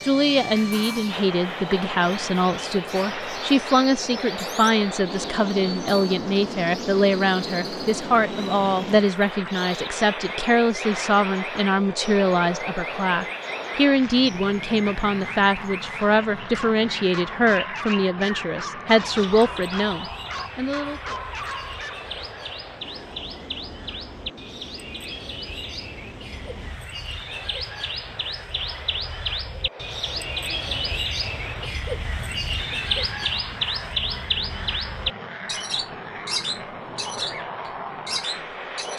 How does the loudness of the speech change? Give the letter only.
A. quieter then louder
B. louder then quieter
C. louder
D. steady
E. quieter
D.